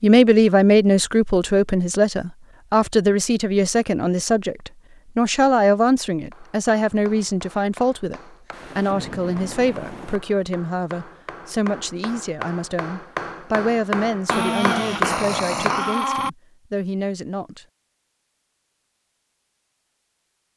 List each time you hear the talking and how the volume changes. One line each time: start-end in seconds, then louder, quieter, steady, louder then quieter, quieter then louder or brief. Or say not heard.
0.0-17.6 quieter.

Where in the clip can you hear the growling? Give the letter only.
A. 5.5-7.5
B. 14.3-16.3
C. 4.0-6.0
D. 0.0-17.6
B.